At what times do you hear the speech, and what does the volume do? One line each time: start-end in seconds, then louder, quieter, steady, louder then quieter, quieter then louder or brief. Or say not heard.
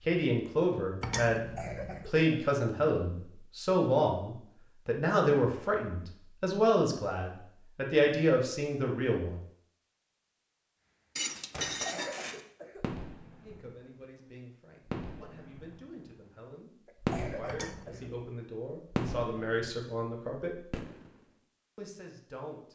0.1-9.4 steady
13.4-20.8 louder
21.8-22.7 brief.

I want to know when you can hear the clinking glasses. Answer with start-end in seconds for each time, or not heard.
1.0-2.1, 11.2-12.4, 17.4-18.2.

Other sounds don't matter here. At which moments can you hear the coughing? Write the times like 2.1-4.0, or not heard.
1.4-2.5, 11.8-12.8, 16.9-18.1.